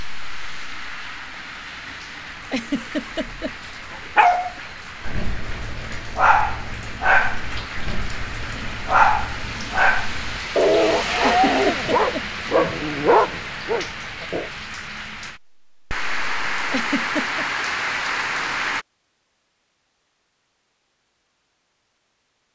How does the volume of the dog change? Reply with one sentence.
The loudness of the dog goes up.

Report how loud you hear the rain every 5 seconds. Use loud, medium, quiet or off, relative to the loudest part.
medium, medium, loud, loud, off.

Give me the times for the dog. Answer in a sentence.
You can hear the dog from 3.9 to 14.5 s.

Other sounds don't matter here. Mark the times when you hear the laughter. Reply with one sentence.
The laughter can be heard from 2.5 to 3.5 s, from 11.2 to 12.2 s and from 16.6 to 17.4 s.